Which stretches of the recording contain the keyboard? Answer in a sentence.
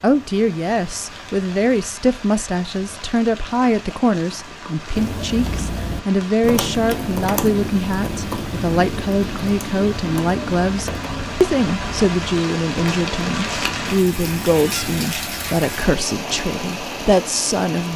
The keyboard can be heard from 5.0 to 15.1 s.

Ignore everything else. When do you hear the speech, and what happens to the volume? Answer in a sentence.
You can hear the speech from 0.0 to 17.9 s, at a steady volume.